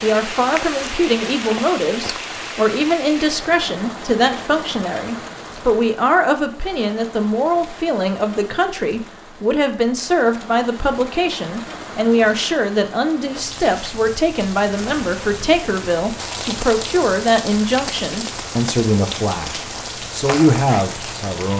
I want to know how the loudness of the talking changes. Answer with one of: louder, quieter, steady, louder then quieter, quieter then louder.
steady.